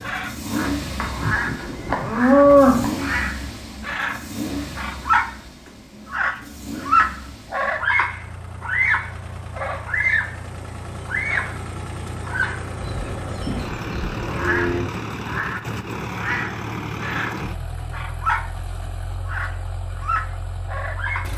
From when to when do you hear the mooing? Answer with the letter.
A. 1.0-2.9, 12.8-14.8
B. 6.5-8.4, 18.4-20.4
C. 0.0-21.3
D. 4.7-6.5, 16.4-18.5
A.